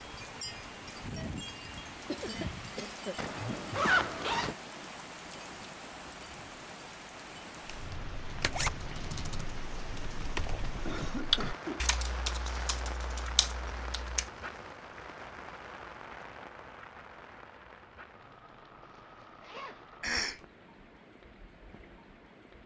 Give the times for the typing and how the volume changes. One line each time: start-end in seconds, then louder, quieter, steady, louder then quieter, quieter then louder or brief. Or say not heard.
7.7-14.3 louder then quieter.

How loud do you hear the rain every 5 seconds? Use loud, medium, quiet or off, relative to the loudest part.
loud, loud, loud, medium, quiet.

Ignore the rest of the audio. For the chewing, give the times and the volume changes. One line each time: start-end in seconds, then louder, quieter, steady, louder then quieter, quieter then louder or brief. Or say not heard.
not heard.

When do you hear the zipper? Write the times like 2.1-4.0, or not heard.
3.1-4.5, 8.3-8.8, 18.8-19.9.